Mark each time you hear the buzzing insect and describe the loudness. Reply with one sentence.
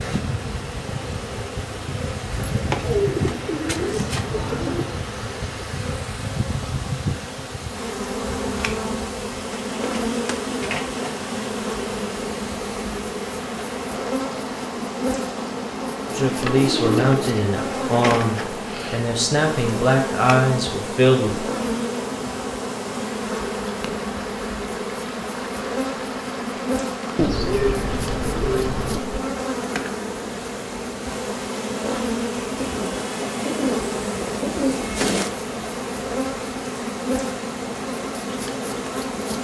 You can hear the buzzing insect from 0.0 to 39.3 s, at a steady volume.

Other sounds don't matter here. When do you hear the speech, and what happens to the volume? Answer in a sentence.
The speech can be heard from 16.1 to 21.4 s, getting quieter then louder.